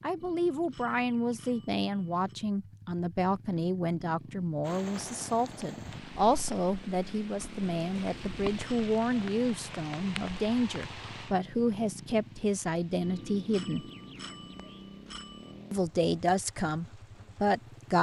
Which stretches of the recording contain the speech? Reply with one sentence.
The speech can be heard from 0.0 to 13.8 s and from 15.7 to 17.9 s.